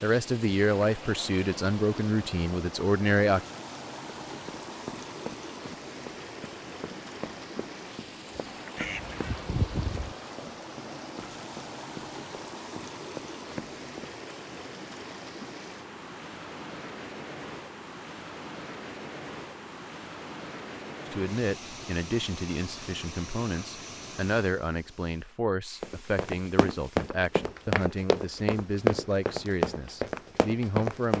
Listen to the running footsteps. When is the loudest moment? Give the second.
29 s.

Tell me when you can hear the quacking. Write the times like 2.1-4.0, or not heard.
8.8-10.2.